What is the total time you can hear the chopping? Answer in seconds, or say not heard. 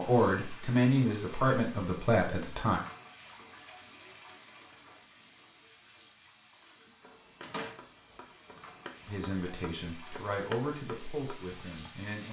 5 s.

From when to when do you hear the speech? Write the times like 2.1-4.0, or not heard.
0.0-2.8, 9.1-12.2.